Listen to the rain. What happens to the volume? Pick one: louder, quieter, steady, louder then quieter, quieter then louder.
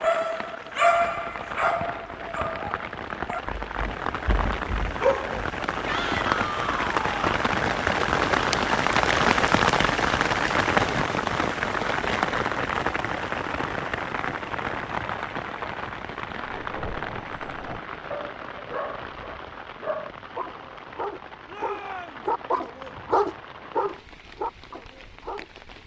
louder then quieter.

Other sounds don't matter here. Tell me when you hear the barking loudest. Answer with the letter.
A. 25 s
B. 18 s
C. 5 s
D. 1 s
D.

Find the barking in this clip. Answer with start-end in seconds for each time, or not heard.
0.0-5.5, 16.4-25.4.